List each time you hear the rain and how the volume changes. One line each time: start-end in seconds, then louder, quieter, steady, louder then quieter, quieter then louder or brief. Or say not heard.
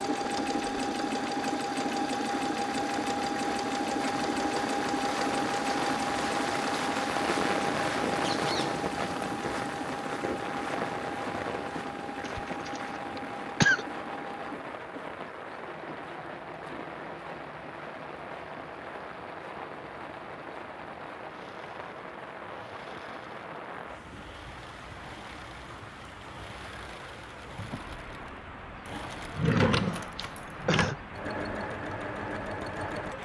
0.0-33.2 quieter.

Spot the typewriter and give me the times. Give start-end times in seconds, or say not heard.
not heard.